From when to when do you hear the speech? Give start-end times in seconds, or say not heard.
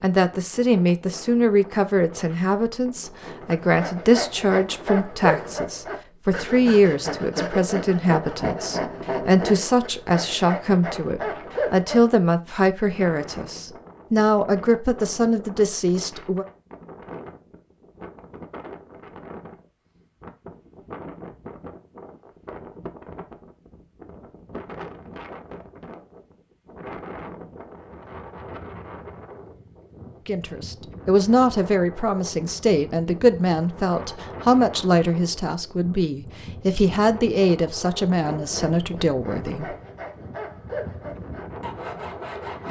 0.0-16.4, 30.2-39.8.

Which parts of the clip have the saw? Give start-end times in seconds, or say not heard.
3.4-12.1, 38.2-42.6.